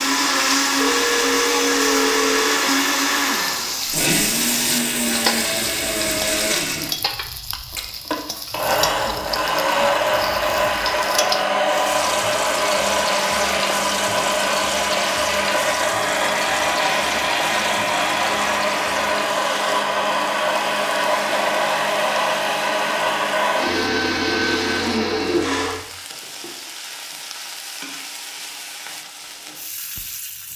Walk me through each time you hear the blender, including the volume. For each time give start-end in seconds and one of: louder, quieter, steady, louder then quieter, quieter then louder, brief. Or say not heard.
0.0-25.8 steady.